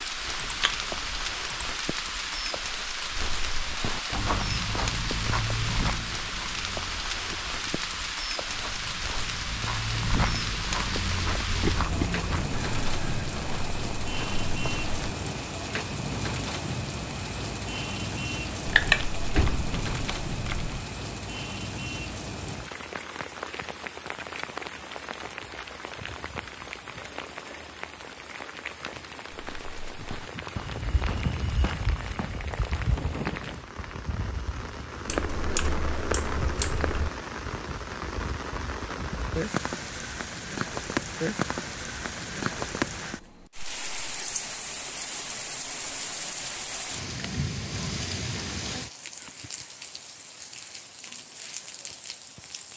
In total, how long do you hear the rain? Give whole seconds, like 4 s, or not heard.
53 s.